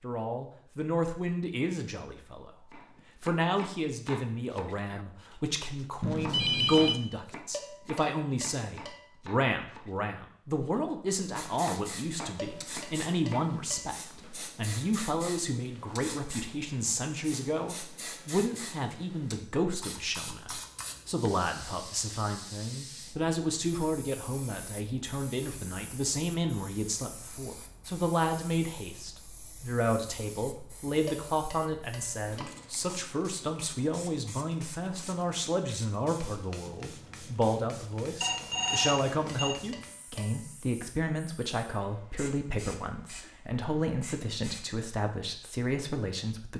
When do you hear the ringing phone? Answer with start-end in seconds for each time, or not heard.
6.0-7.0, 23.1-23.9, 38.2-39.6.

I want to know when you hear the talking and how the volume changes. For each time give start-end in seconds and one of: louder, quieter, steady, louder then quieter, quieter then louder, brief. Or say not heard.
0.0-2.5 brief
3.2-46.5 steady.